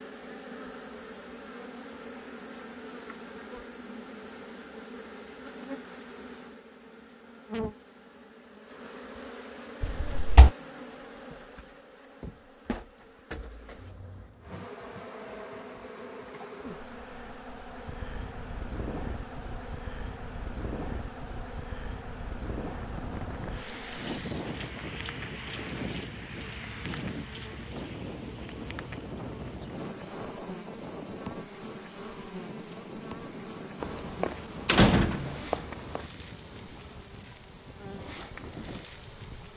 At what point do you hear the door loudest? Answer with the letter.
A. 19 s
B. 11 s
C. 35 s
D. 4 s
C.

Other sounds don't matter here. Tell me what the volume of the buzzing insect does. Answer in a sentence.
The loudness of the buzzing insect stays about the same.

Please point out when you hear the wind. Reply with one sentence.
You can hear the wind from 17.9 to 39.5 s.